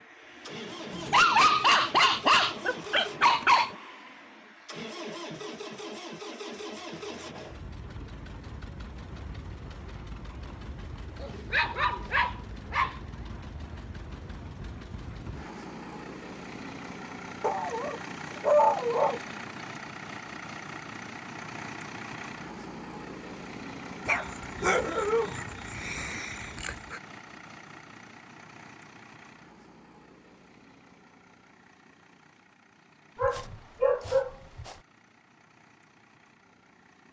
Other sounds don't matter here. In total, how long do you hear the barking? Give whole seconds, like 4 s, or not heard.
11 s.